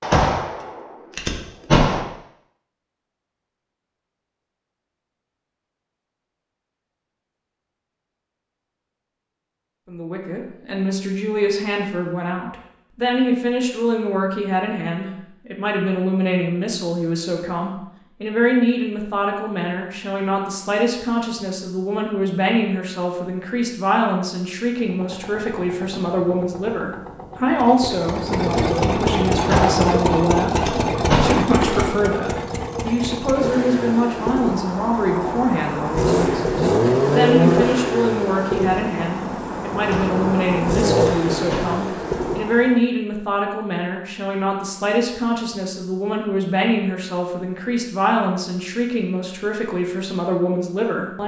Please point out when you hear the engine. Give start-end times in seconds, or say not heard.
24.9-42.8.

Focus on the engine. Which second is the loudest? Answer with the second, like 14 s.
37 s.